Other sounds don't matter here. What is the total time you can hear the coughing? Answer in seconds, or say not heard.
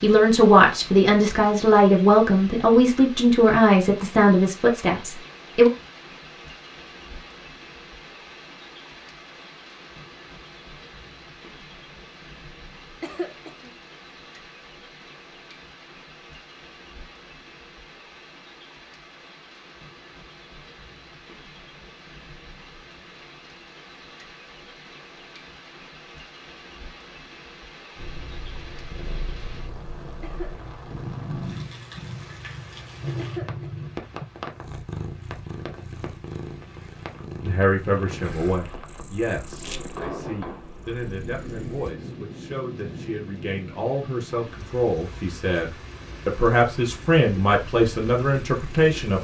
2 s.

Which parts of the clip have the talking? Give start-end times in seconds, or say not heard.
0.0-5.7, 37.4-49.1.